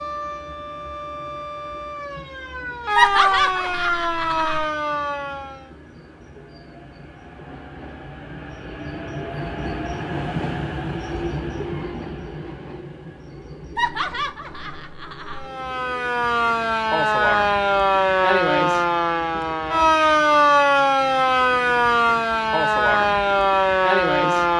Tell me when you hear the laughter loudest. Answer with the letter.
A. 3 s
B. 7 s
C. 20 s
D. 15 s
A.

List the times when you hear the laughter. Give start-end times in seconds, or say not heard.
3.0-4.7, 13.8-15.4.